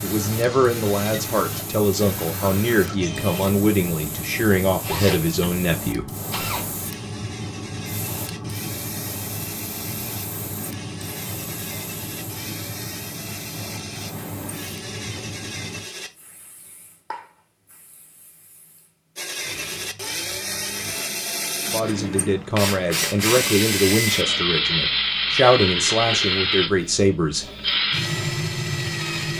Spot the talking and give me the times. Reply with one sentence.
You can hear the talking from 0.0 to 6.1 s and from 21.6 to 27.5 s.